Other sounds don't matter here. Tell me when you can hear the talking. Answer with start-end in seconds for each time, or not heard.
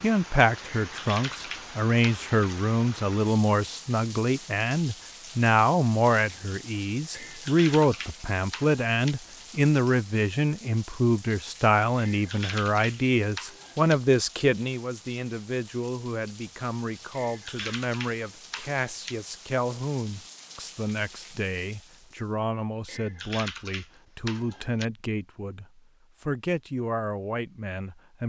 0.0-28.2.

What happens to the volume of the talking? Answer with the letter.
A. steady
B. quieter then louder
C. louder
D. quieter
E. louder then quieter
D.